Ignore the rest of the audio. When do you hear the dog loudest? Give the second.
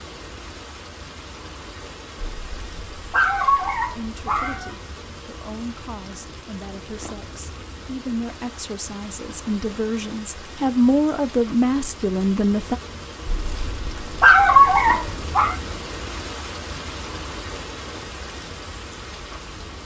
14 s.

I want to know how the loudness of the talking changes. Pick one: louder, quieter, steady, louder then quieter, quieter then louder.
louder.